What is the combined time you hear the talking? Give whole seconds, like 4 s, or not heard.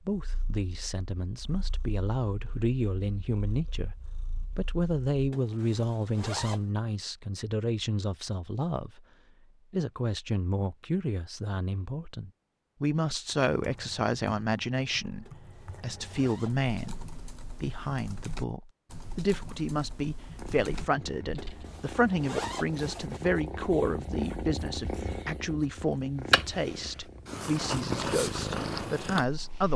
29 s.